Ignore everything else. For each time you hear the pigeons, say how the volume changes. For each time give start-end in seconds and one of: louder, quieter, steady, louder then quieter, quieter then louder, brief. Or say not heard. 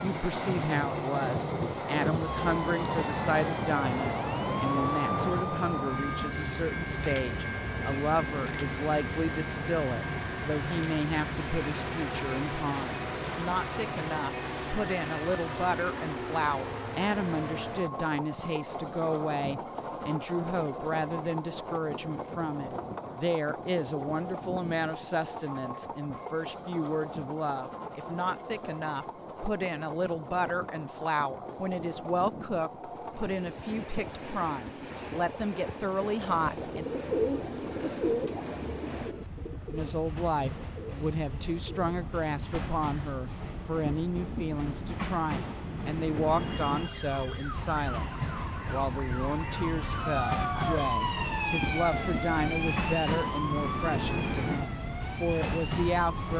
36.2-42.1 quieter.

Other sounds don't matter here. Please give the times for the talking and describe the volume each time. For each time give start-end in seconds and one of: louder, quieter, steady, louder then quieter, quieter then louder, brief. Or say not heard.
0.0-36.9 steady
39.7-56.3 steady.